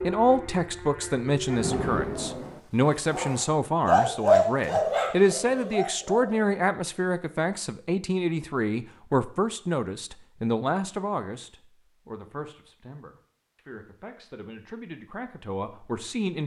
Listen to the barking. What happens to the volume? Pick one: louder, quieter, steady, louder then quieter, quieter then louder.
louder then quieter.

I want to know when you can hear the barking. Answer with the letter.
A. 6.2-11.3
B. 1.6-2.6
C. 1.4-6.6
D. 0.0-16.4
C.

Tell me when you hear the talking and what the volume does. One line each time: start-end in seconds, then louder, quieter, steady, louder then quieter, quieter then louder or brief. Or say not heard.
0.0-16.4 quieter.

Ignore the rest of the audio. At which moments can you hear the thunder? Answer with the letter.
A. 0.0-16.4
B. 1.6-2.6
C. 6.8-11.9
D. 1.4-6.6
B.